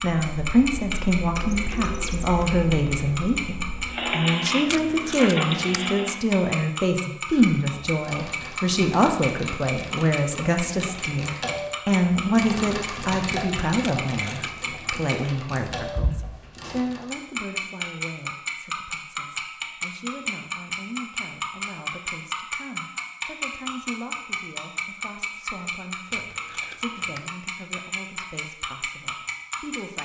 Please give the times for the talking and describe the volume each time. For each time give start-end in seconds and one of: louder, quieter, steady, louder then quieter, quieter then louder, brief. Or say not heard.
0.0-30.0 quieter.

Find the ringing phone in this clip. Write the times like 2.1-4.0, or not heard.
not heard.